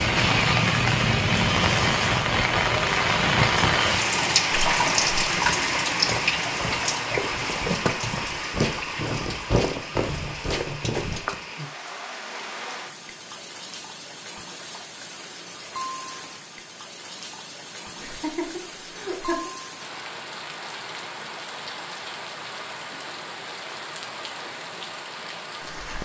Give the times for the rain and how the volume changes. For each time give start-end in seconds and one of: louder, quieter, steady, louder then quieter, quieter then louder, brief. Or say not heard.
0.0-25.9 quieter.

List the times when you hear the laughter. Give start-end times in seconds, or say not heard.
17.9-19.5.